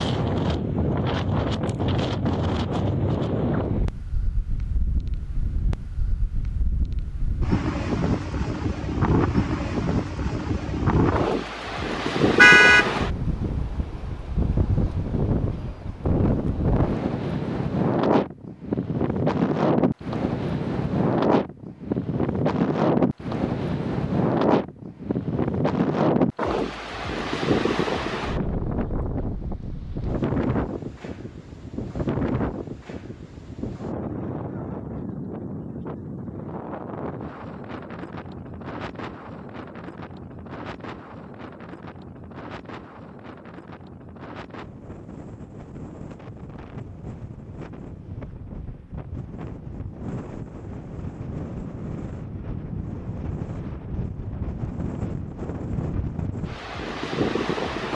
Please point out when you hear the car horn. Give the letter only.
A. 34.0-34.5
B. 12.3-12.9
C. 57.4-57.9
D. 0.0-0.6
B.